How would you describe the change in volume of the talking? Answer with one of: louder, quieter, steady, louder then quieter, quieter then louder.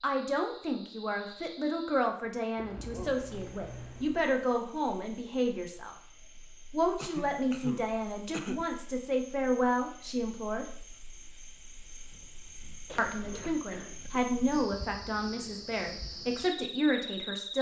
steady.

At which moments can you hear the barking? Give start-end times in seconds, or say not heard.
not heard.